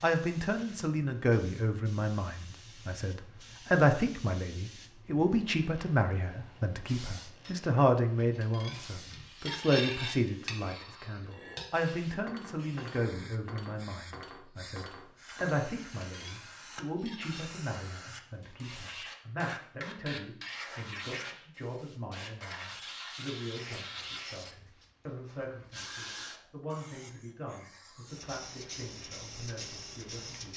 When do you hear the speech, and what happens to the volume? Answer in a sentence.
The speech can be heard from 0.0 to 30.5 s, getting quieter.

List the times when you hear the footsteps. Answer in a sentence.
You can't hear the footsteps here.